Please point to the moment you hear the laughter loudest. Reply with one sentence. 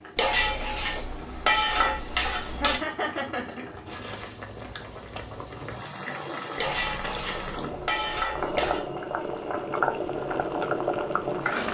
The volume of the laughter peaks at 3 seconds.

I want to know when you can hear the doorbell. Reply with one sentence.
The doorbell can't be heard in this clip.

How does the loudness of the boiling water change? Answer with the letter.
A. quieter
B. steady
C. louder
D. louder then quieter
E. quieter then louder
C.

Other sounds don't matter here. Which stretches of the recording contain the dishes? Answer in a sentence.
The dishes can be heard from 0.1 to 2.8 s and from 6.5 to 8.8 s.